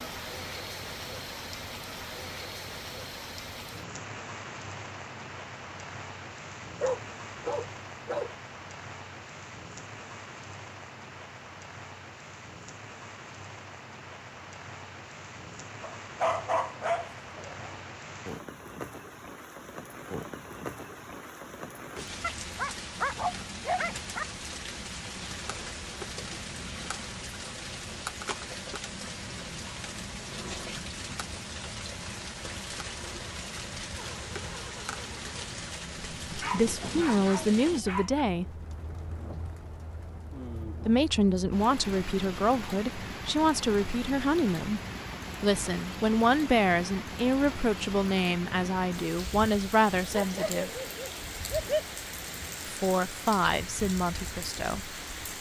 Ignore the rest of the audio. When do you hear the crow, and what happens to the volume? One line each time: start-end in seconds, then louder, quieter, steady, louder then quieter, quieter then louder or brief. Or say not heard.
not heard.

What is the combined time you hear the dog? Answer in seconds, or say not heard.
9 s.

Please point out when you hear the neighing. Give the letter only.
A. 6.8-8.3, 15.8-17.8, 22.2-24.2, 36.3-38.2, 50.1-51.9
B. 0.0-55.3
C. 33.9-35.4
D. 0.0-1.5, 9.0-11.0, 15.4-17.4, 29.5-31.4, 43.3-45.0
C.